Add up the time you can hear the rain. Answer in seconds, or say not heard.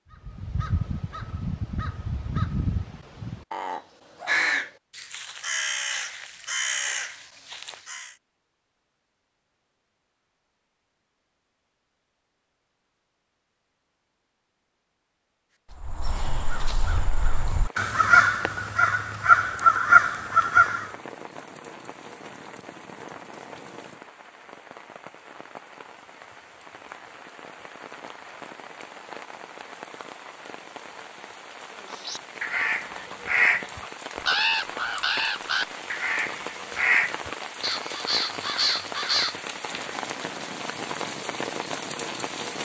26 s.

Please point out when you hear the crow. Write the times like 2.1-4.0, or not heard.
0.1-8.2, 15.7-20.9, 32.0-40.0.